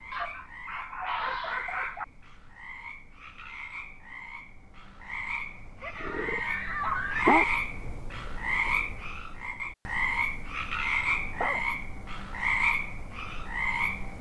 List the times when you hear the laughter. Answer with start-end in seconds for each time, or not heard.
5.8-7.4.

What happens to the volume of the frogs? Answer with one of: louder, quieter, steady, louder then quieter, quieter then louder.
louder.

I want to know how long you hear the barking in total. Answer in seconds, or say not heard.
4 s.